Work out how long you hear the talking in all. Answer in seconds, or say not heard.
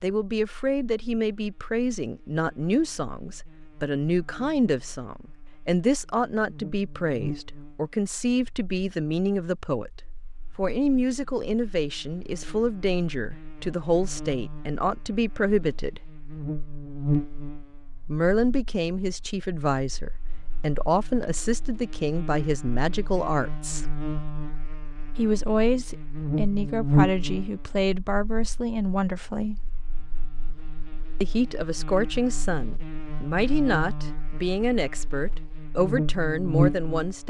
32 s.